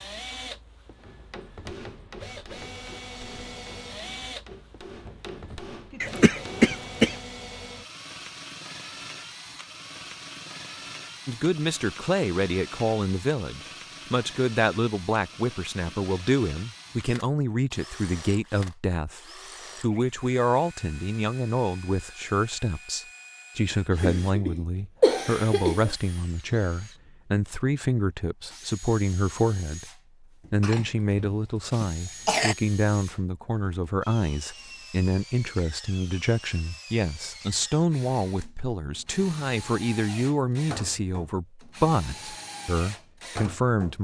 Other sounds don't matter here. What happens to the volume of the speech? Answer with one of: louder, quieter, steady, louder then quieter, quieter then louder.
steady.